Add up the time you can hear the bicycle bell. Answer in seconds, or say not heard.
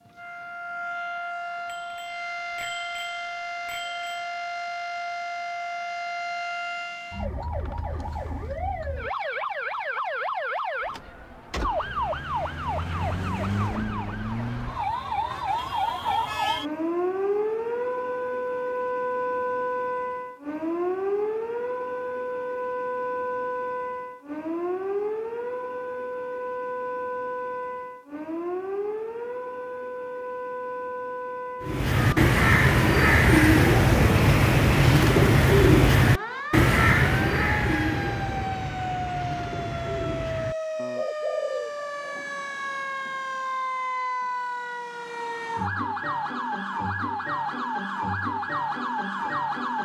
3 s.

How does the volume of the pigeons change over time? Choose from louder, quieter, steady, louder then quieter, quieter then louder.
quieter.